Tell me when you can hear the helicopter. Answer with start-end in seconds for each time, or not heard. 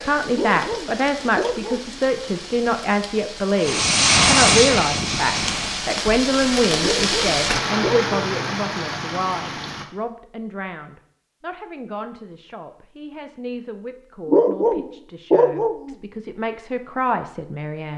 3.6-6.0.